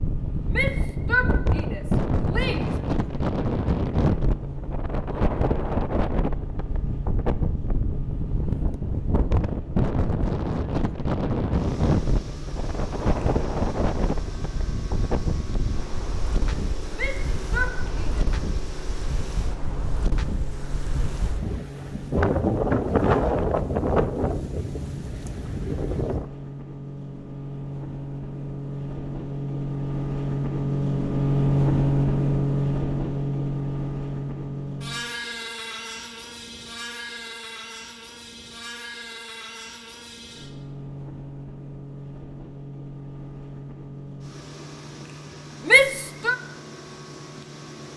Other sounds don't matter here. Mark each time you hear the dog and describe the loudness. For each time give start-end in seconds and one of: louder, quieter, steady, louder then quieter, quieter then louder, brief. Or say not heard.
not heard.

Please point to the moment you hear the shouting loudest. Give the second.
46 s.